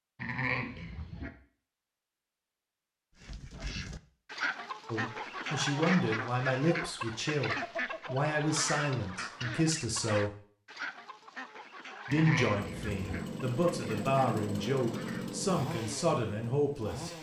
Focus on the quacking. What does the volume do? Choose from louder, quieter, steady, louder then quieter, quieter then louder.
quieter.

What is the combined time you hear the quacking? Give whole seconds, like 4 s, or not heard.
12 s.